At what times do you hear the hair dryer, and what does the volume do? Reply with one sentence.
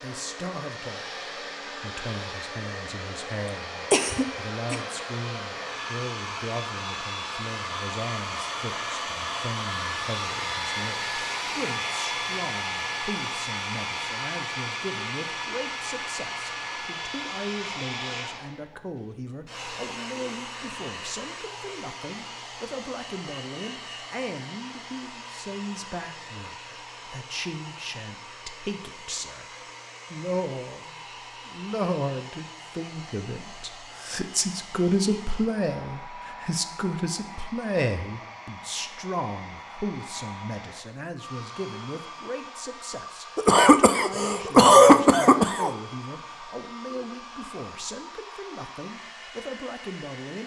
The hair dryer can be heard from 0.0 to 50.4 s, getting quieter.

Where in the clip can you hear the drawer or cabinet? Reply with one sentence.
The drawer or cabinet can't be heard in this clip.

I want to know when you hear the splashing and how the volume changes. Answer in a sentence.
The splashing can't be heard in this clip.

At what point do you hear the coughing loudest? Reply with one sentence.
The loudest moment of the coughing is at 45 seconds.